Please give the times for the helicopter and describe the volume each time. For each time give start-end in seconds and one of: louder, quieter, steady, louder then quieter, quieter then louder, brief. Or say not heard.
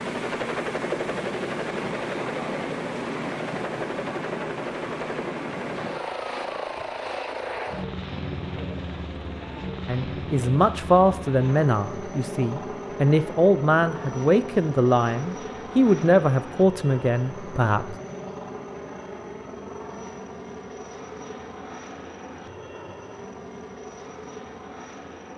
0.0-25.3 quieter.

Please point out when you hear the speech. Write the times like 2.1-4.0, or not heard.
9.8-17.9.